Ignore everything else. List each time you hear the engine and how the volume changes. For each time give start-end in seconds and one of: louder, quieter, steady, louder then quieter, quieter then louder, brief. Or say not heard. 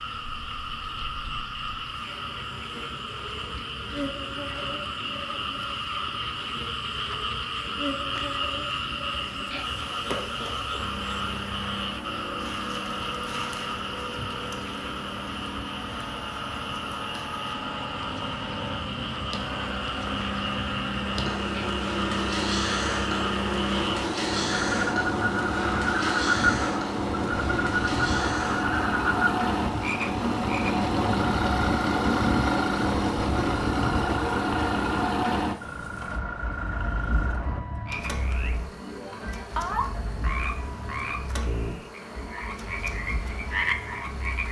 10.8-44.4 louder then quieter.